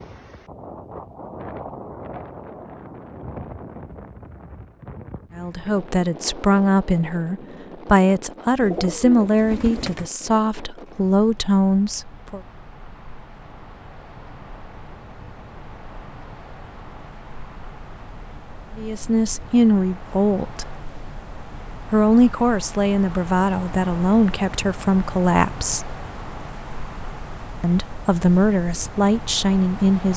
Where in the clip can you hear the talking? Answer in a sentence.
You can hear the talking from 5.3 to 12.4 s, from 18.8 to 20.8 s, from 21.9 to 25.9 s and from 27.6 to 30.1 s.